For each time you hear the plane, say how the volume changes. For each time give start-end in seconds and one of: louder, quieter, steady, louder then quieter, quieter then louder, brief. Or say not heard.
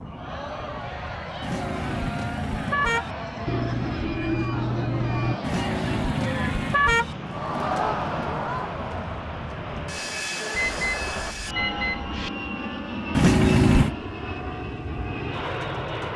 0.0-16.1 louder.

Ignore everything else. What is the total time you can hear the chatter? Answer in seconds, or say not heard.
11 s.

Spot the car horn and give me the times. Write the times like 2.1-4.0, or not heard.
1.4-3.1, 5.4-7.2, 13.2-13.9.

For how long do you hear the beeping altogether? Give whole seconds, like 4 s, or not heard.
4 s.